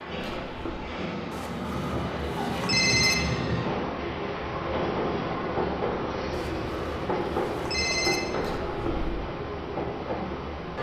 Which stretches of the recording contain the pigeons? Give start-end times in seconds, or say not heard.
not heard.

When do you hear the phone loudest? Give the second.
3 s.